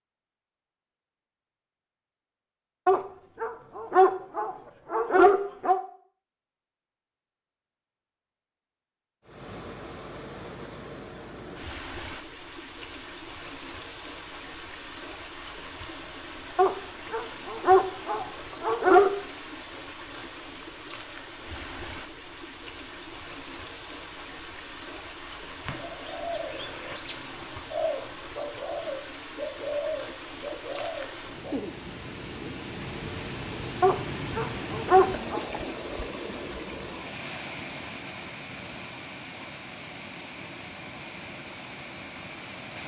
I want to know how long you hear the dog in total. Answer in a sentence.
You can hear the dog for 7 seconds altogether.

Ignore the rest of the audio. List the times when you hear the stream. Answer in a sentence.
The stream can be heard from 9.2 to 42.8 s.